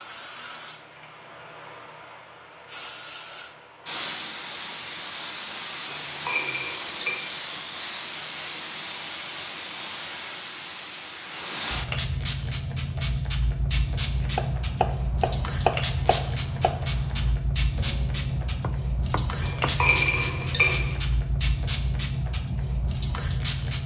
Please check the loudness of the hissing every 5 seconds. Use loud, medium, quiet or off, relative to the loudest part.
medium, loud, loud, loud, loud.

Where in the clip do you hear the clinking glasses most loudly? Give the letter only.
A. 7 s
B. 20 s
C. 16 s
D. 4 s
B.